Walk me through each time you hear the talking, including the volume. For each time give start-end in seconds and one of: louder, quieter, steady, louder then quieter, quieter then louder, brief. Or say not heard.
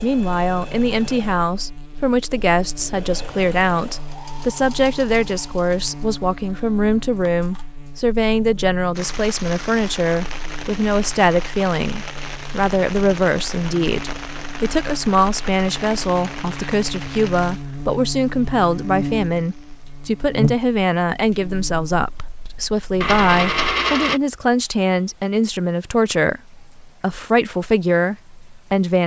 0.0-29.0 steady.